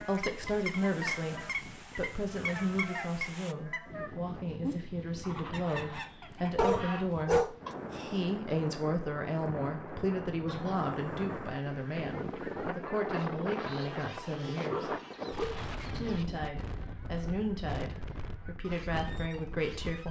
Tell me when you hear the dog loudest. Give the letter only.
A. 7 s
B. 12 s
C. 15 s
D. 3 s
A.